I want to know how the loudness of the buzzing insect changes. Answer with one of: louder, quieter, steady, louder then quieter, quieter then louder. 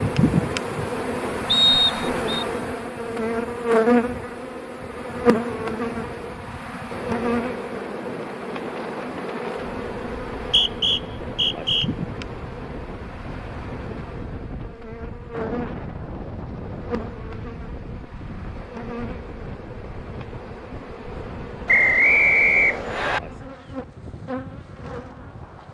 quieter.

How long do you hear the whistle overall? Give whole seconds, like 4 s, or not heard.
4 s.